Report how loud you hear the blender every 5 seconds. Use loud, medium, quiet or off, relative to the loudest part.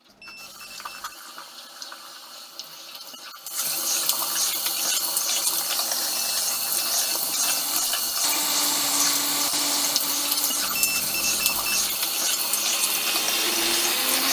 off, loud, loud.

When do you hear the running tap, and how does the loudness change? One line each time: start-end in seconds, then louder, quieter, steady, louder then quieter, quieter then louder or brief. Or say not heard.
0.0-14.2 louder.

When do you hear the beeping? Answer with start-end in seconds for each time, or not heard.
0.1-1.2, 6.0-7.7, 10.6-12.0.